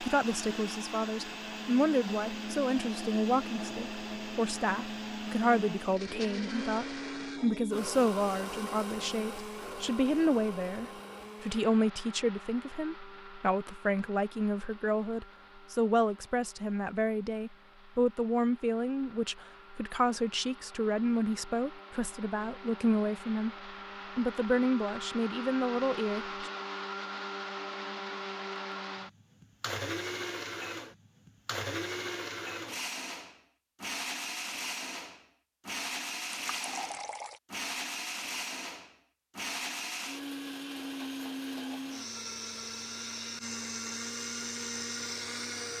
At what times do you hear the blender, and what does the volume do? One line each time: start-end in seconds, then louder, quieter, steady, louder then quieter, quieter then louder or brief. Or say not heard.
0.0-45.7 quieter then louder.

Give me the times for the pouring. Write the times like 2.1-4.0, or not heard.
36.4-37.4.